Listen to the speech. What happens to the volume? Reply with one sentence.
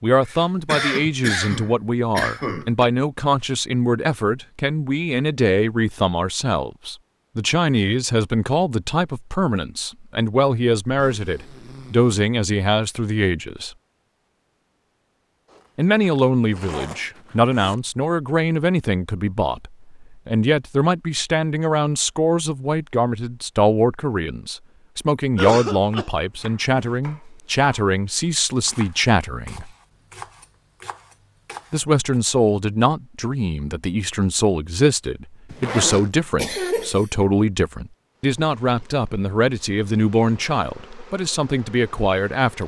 The volume of the speech stays about the same.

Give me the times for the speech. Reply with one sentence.
The speech can be heard from 0.0 to 13.7 s, from 15.8 to 29.7 s and from 31.7 to 42.6 s.